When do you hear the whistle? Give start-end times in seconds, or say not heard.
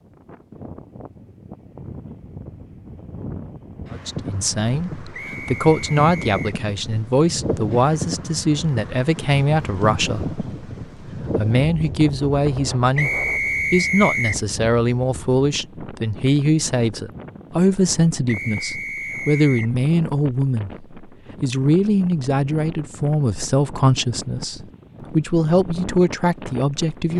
5.1-6.6, 12.9-14.4, 18.2-19.8.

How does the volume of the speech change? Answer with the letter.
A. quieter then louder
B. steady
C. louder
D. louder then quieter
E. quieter
B.